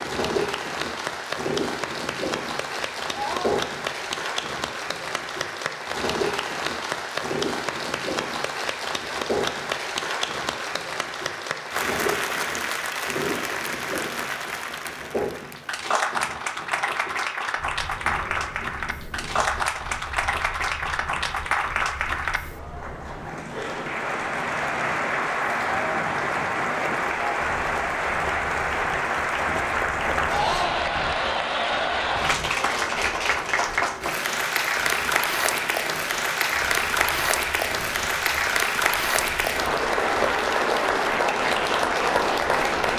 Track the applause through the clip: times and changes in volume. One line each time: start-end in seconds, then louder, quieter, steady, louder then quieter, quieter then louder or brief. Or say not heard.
0.0-42.9 louder.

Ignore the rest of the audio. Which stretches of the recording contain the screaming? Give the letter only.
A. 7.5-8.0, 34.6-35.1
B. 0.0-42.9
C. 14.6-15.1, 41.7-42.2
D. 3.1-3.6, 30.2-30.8
D.